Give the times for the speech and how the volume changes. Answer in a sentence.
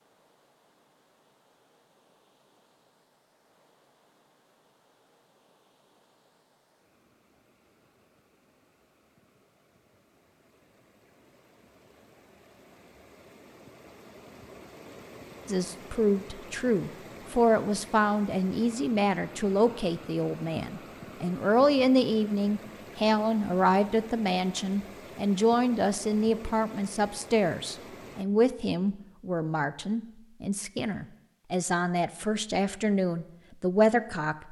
You can hear the speech from 15.4 to 34.4 s, at a steady volume.